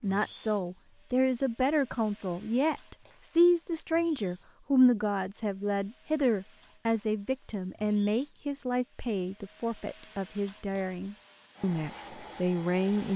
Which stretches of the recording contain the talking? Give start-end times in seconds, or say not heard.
0.0-13.1.